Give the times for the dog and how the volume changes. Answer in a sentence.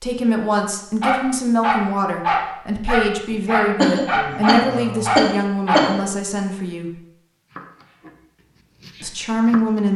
You can hear the dog from 1.0 to 5.9 s, at a steady volume.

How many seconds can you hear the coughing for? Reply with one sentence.
The coughing can be heard for 3 seconds in total.